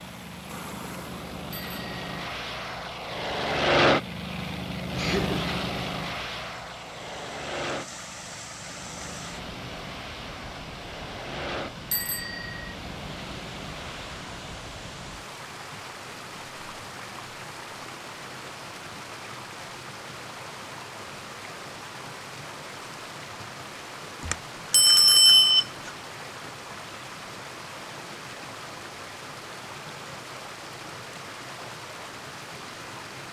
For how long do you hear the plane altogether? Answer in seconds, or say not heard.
15 s.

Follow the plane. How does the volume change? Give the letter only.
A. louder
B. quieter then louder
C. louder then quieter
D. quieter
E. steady
C.